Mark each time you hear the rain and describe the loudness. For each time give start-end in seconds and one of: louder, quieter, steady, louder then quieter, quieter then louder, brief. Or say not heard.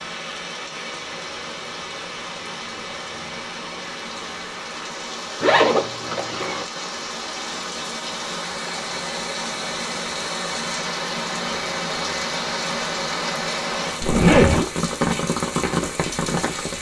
0.0-16.7 louder.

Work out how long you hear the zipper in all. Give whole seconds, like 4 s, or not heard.
2 s.